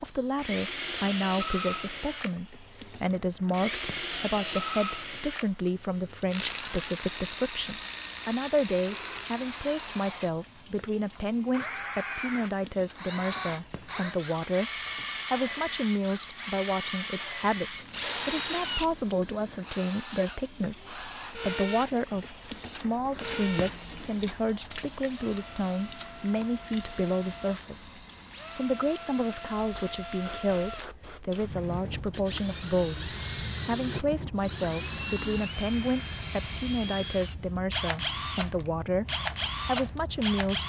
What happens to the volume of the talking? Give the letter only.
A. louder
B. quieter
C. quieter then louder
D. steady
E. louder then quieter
D.